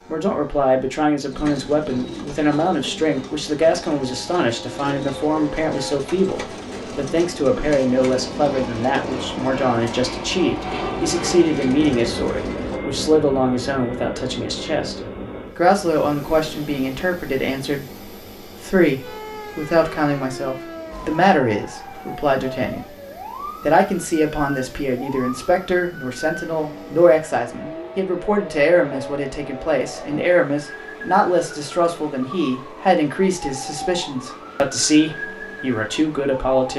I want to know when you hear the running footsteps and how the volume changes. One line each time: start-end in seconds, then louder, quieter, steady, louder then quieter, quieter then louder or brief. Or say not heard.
not heard.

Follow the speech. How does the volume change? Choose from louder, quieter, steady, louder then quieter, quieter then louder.
steady.